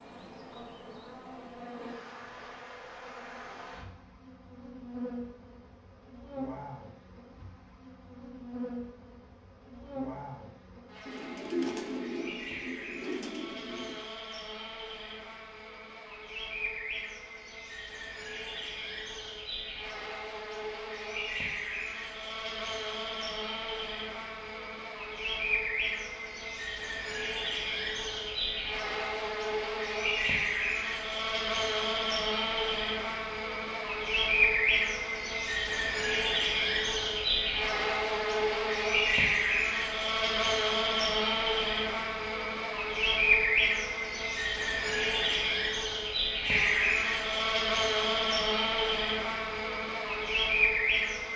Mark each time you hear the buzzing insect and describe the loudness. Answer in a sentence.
You can hear the buzzing insect from 0.0 to 51.3 s, getting louder.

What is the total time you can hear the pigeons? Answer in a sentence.
The pigeons can be heard for 3 seconds in total.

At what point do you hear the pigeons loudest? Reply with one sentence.
The loudest moment of the pigeons is at 12 seconds.